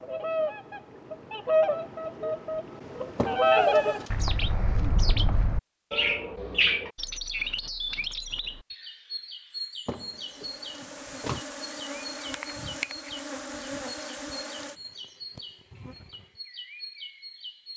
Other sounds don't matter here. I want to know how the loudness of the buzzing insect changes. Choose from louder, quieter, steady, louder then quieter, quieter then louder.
louder then quieter.